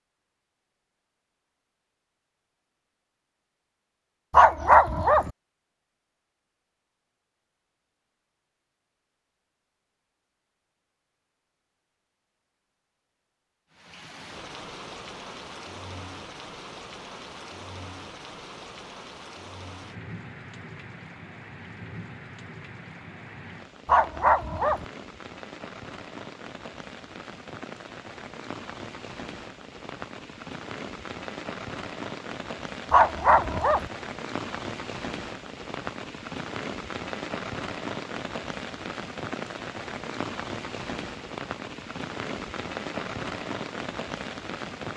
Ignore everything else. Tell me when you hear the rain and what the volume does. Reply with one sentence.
You can hear the rain from 13.7 to 44.9 s, getting louder.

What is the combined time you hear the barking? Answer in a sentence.
The barking can be heard for 3 seconds in total.